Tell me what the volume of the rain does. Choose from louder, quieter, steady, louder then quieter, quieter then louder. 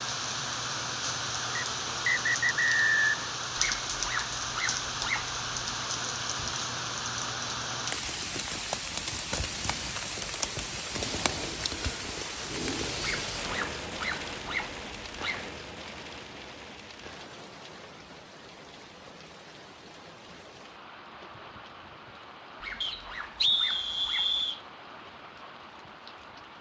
quieter.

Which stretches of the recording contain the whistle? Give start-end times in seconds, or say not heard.
1.6-3.1, 22.8-24.6.